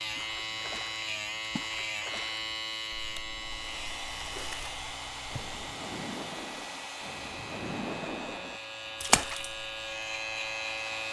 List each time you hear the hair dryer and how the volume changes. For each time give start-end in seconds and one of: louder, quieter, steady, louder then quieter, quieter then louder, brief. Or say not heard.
3.5-11.0 quieter.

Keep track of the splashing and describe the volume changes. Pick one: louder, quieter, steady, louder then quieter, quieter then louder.
quieter then louder.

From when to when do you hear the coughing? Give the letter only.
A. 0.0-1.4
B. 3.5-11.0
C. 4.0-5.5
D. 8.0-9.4
C.